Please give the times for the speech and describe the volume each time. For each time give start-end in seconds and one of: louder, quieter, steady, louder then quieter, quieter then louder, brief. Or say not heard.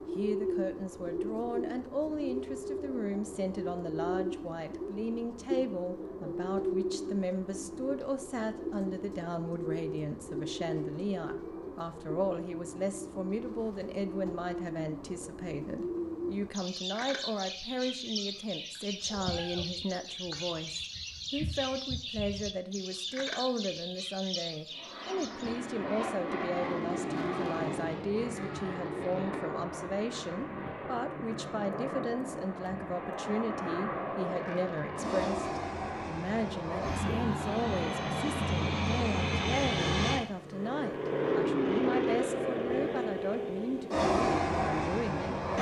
0.1-45.4 steady.